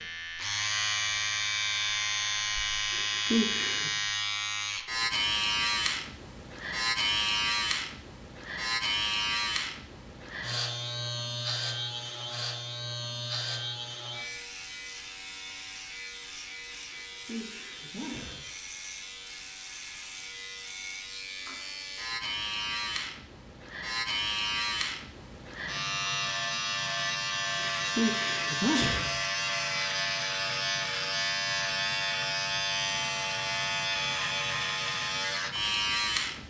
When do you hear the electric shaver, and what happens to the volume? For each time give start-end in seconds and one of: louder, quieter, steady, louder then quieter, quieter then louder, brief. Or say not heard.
0.0-36.4 quieter then louder.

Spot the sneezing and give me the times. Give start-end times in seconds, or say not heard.
2.9-3.9, 16.9-18.5, 27.6-29.1.